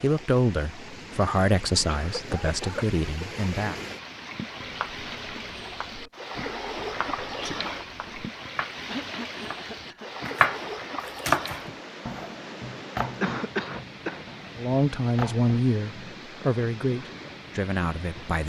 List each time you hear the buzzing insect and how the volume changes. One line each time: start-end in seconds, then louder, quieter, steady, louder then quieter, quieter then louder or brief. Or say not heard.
not heard.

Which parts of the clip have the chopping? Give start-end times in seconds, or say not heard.
4.6-8.8, 9.4-10.7, 11.2-16.4.